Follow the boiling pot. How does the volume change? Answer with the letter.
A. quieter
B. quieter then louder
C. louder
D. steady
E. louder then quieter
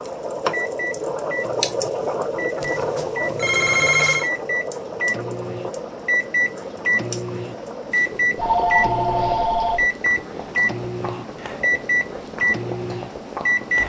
A.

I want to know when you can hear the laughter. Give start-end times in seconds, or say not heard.
not heard.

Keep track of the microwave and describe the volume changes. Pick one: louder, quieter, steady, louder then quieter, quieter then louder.
louder.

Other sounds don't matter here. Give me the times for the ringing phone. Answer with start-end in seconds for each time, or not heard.
2.6-4.3, 8.3-9.8.